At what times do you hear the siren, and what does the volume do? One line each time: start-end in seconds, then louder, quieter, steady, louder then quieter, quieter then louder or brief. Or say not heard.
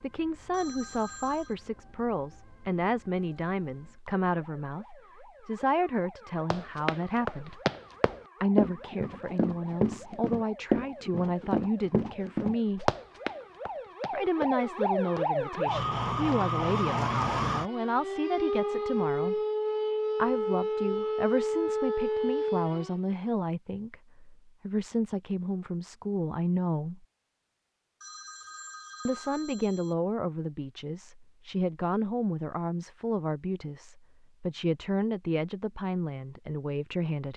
0.0-23.0 louder.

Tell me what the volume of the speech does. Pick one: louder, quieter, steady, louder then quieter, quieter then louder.
steady.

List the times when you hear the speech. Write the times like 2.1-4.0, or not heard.
0.0-7.6, 8.4-12.9, 14.1-19.4, 20.1-27.1, 29.1-37.3.